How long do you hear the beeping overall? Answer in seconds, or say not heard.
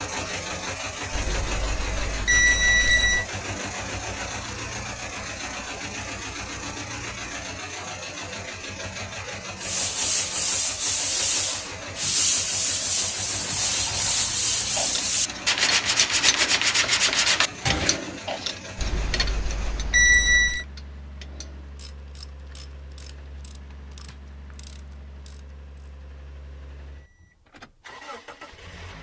4 s.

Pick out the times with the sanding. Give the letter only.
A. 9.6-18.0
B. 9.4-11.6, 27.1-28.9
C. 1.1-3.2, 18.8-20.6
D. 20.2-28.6
A.